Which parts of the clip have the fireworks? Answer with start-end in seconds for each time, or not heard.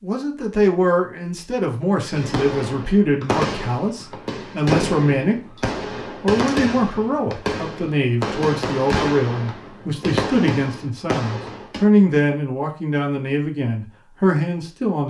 2.1-11.8.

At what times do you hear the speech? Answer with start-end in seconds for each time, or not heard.
0.0-15.0.